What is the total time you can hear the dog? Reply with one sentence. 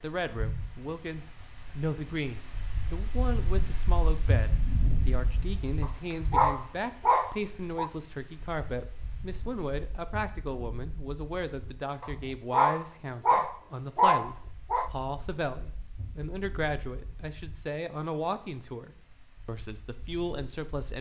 The dog can be heard for 5 seconds in total.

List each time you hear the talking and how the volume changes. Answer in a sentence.
The talking can be heard from 0.0 to 20.9 s, at a steady volume.